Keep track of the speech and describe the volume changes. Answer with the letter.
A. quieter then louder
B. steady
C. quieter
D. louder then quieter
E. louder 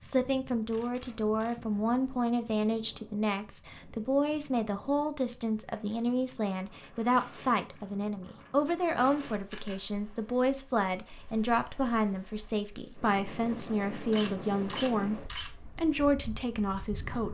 B.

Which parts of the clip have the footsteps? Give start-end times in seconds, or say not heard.
not heard.